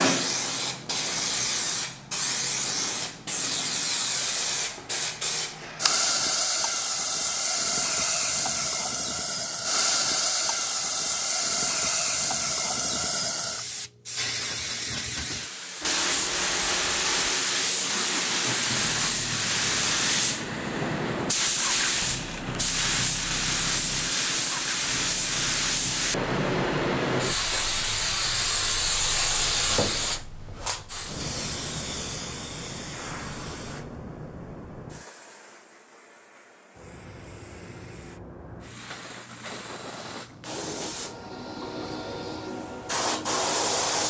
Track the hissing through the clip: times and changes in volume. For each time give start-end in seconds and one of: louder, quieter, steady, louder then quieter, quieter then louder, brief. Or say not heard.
0.0-44.0 quieter.